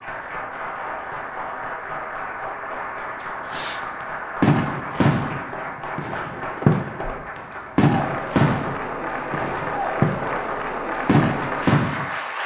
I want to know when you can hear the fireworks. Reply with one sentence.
The fireworks can be heard from 3.2 to 12.1 s.